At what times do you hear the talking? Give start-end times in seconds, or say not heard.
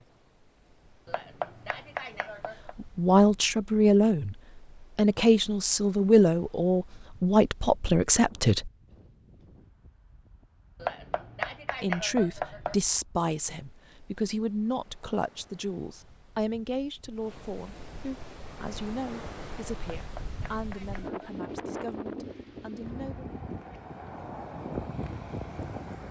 2.8-4.3, 5.0-8.7, 11.8-23.4.